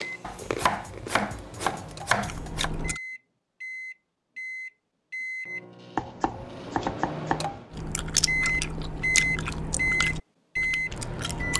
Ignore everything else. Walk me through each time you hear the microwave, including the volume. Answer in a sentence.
You can hear the microwave from 0.0 to 11.5 s, getting louder.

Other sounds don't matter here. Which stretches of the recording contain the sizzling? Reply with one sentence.
You can't hear the sizzling here.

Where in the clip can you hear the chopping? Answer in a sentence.
You can hear the chopping from 0.2 to 2.7 s and from 6.0 to 7.6 s.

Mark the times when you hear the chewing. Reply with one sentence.
You can hear the chewing from 0.0 to 3.0 s and from 7.7 to 11.5 s.